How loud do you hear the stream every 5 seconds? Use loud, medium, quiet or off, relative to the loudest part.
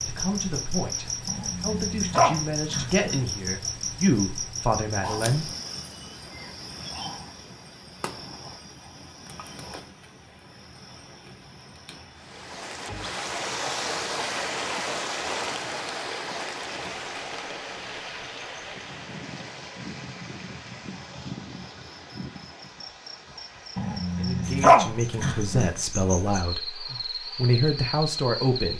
off, off, loud, loud, quiet, quiet.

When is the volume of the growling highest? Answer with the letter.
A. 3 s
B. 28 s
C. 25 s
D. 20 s
C.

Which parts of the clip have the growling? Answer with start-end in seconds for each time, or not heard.
1.2-3.2, 23.8-25.7.